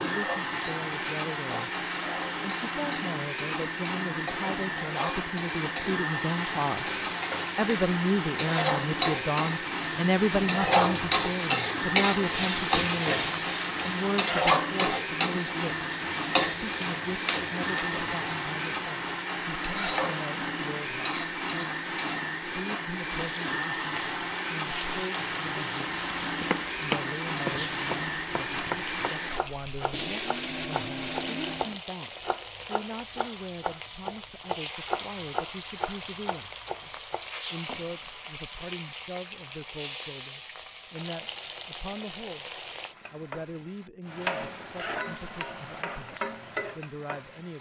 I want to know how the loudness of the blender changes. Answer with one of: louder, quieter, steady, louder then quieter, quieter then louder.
steady.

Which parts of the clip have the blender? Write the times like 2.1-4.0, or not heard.
0.0-31.8.